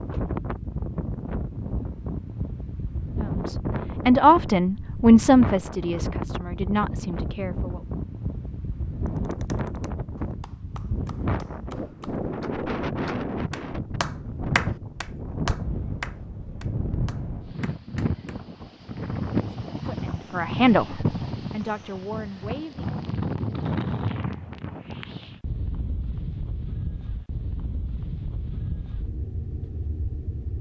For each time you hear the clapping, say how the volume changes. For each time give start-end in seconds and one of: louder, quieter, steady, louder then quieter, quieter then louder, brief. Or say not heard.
9.2-18.4 louder then quieter.